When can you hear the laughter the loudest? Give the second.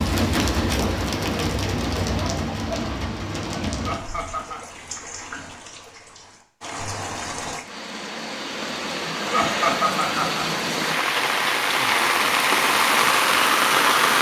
10 s.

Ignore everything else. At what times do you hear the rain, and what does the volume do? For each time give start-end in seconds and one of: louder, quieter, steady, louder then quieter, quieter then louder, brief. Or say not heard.
0.0-14.1 quieter then louder.